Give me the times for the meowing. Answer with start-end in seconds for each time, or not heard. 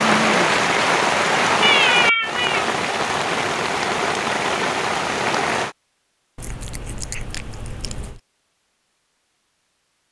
1.6-2.6, 6.3-8.2.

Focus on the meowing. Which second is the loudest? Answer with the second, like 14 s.
2 s.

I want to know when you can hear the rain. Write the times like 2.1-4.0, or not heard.
0.0-5.8.